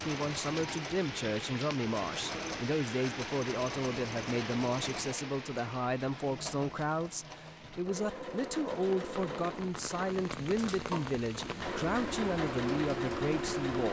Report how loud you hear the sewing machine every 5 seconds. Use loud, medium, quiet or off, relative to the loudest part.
medium, medium, loud.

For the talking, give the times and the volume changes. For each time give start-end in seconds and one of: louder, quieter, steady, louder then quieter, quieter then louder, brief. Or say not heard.
0.0-13.8 steady.